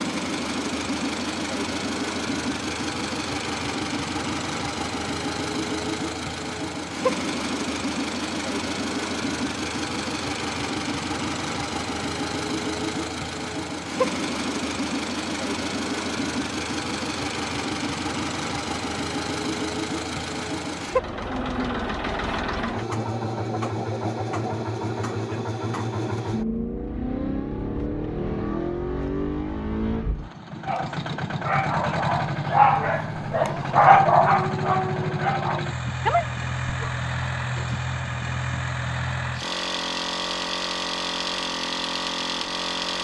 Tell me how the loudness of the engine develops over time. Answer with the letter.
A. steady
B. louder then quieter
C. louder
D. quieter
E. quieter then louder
A.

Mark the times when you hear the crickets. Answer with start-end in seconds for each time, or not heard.
not heard.